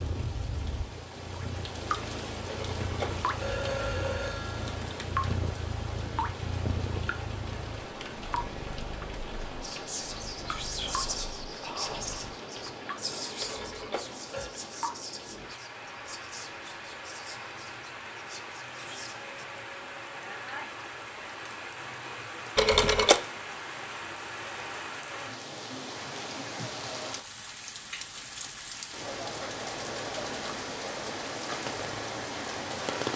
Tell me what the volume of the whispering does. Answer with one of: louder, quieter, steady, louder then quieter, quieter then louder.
quieter.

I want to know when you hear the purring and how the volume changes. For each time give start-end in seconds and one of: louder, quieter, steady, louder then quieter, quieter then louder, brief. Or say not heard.
0.0-12.3 louder then quieter.